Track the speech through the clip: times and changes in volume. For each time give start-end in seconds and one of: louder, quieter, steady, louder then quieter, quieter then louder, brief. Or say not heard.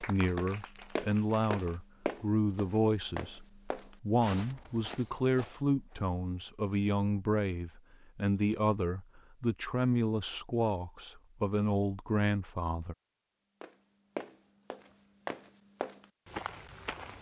0.0-12.9 steady.